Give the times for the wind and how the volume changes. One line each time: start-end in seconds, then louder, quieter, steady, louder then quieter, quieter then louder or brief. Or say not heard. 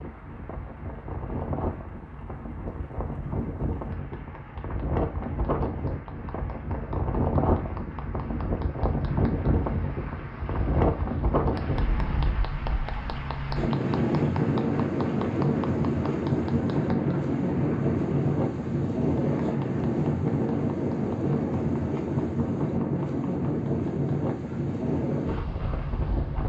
0.0-26.4 louder.